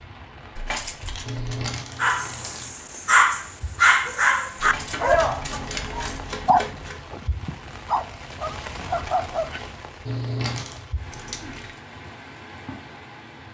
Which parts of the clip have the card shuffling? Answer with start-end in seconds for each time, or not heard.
1.2-2.8, 4.6-7.0, 10.1-10.9.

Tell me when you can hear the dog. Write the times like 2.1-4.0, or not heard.
2.0-9.6.